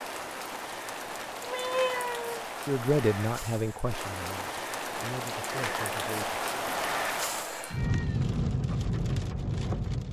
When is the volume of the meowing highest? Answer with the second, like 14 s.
2 s.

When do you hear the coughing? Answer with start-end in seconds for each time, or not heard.
not heard.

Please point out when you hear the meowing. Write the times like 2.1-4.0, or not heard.
1.4-2.5, 7.5-8.2.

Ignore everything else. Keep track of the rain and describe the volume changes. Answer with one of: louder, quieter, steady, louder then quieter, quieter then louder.
louder.